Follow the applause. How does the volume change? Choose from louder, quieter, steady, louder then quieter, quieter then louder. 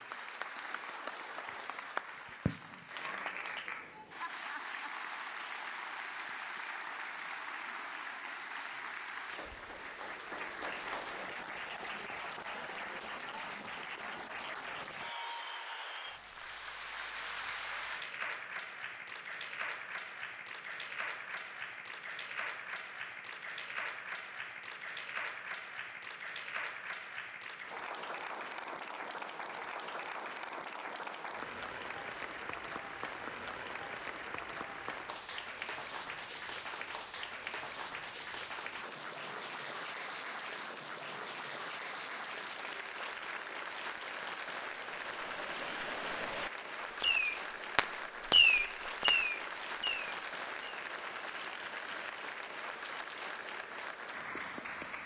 steady.